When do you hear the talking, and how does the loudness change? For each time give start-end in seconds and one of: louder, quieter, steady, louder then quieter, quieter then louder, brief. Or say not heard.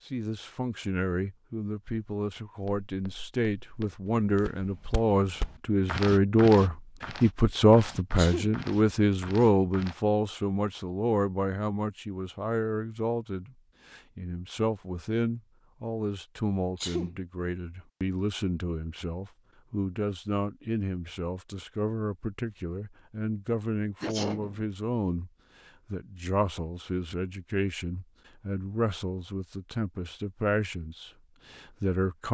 0.1-25.3 louder then quieter
25.9-32.2 quieter.